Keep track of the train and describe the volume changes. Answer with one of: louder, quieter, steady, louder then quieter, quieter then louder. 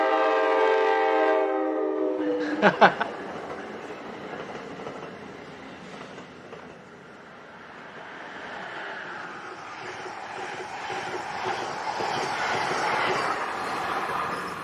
quieter then louder.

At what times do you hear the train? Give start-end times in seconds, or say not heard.
0.0-14.5.